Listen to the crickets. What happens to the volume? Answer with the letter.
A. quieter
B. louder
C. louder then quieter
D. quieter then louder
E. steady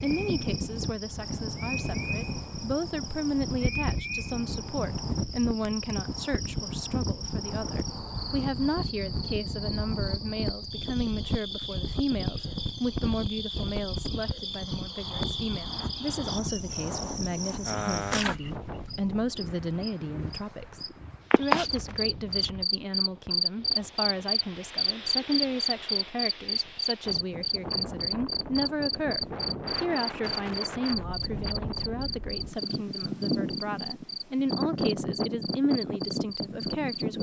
C.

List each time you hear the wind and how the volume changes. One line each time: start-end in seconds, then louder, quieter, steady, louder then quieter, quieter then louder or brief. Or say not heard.
0.0-37.1 quieter then louder.